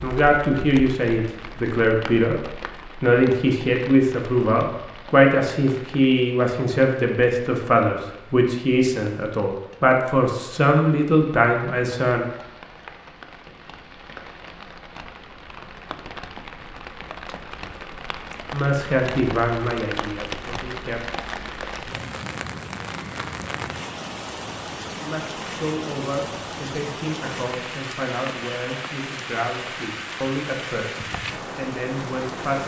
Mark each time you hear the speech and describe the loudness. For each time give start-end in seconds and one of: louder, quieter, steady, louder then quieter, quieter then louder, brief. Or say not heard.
0.0-12.2 steady
18.5-21.0 brief
24.9-32.6 steady.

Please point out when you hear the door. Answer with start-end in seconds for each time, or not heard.
not heard.